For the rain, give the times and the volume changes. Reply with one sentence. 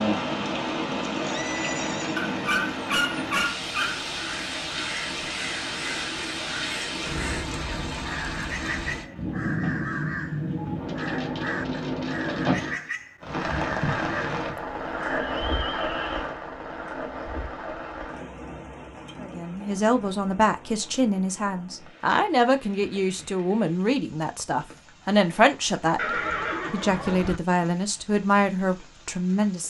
You can hear the rain from 0.0 to 29.6 s, getting quieter.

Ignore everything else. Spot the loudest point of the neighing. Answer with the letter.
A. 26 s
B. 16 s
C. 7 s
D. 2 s
A.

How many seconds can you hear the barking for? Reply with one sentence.
You can hear the barking for 2 seconds altogether.